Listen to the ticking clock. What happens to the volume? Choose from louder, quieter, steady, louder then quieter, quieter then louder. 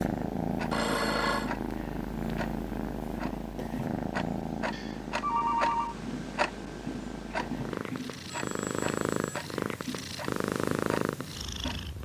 louder then quieter.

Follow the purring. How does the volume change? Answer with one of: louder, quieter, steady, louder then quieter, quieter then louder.
quieter then louder.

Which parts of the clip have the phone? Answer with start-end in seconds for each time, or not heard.
0.7-1.5, 4.7-6.0, 8.3-9.4.